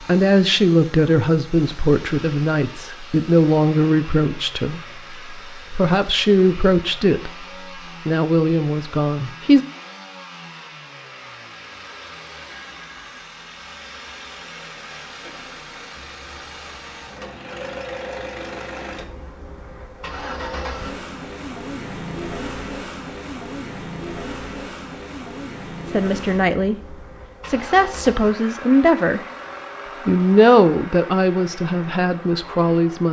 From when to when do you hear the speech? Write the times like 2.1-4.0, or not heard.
0.0-9.6, 25.9-29.2, 30.1-33.0.